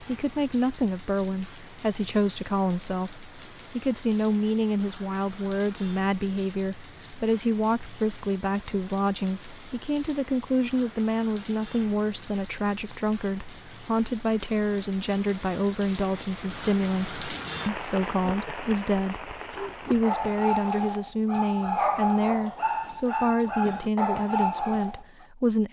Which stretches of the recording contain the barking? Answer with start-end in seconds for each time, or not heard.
19.5-25.0.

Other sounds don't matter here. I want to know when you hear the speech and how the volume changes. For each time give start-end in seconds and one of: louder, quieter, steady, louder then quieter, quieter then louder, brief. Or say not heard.
0.0-25.6 steady.